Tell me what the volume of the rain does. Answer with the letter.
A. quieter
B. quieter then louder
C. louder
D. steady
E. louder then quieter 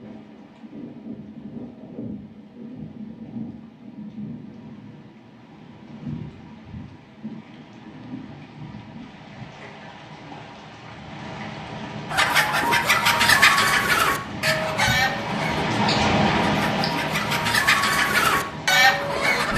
C.